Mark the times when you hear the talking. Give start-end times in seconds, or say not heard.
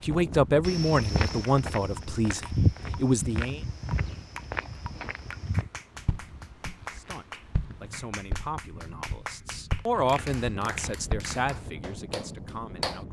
0.0-3.6, 6.9-13.0.